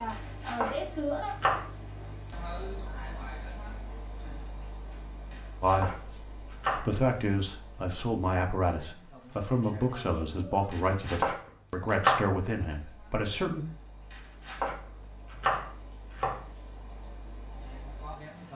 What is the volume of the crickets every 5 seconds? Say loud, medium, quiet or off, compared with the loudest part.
loud, medium, quiet, medium.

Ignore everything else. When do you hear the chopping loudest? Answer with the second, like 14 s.
12 s.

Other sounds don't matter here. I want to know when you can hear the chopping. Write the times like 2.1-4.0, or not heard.
0.1-1.6, 5.3-6.8, 10.7-12.2, 14.1-16.4.